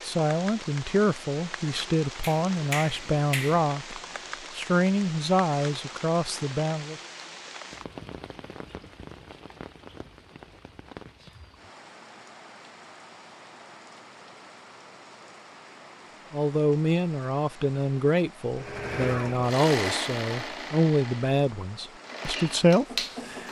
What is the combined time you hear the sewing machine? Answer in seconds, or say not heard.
5 s.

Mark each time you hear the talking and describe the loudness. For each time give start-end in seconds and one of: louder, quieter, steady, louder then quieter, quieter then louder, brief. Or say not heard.
0.0-7.0 steady
16.3-23.4 steady.